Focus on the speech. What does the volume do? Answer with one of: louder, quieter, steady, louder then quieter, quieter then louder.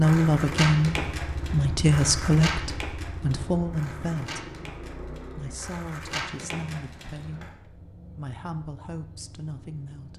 quieter.